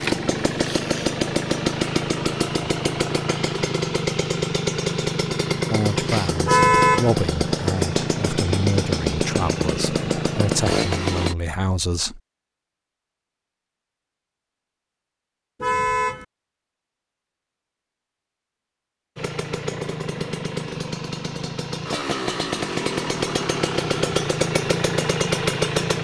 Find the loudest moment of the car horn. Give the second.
7 s.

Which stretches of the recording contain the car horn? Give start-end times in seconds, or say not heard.
6.5-7.1, 15.6-16.2.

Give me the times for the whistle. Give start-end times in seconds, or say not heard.
not heard.